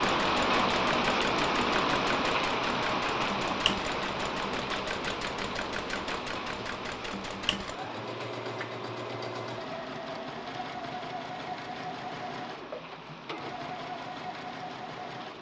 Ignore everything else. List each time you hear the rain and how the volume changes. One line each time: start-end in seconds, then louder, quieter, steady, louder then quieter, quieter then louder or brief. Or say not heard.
0.0-15.3 quieter.